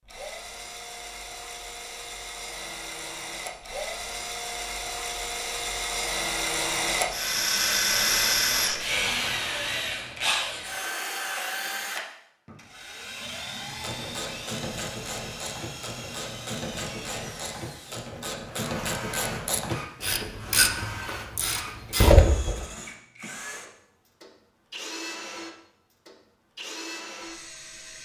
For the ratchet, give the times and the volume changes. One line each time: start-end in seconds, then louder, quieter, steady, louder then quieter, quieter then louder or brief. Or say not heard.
13.8-22.6 louder.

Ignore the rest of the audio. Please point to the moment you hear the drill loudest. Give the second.
8 s.